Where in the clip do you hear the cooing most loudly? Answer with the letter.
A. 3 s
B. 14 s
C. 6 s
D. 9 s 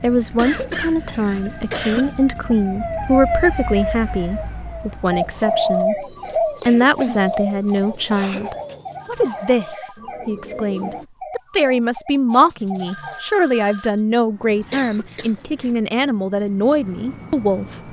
C.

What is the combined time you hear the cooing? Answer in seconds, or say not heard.
6 s.